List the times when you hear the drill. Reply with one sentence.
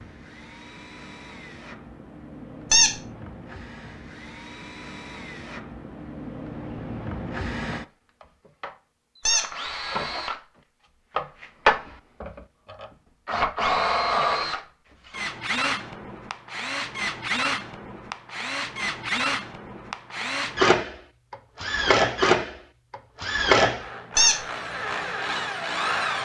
The drill can be heard from 0.0 to 26.2 s.